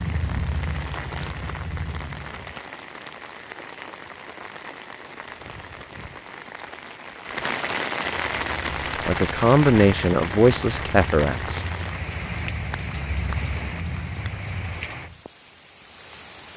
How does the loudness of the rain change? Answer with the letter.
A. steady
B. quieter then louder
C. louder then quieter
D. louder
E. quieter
C.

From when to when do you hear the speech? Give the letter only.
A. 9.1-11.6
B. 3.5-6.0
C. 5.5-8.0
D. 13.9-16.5
A.